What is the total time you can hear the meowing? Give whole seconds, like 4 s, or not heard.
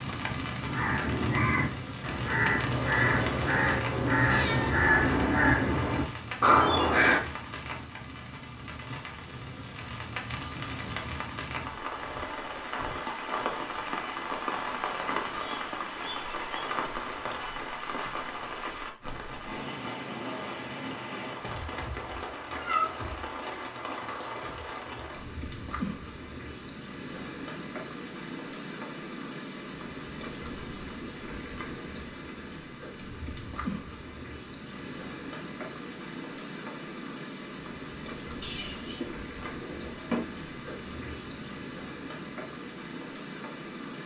4 s.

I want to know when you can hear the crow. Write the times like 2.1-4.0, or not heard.
0.6-7.2.